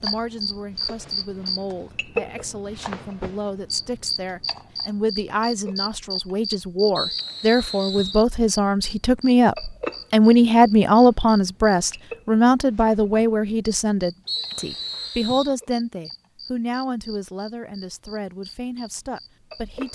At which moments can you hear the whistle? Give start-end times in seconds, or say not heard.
7.0-8.2, 14.2-15.6.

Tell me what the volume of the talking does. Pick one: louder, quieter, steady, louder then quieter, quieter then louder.
louder then quieter.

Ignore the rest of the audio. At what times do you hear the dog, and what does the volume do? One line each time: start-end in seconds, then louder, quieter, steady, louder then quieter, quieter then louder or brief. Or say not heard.
not heard.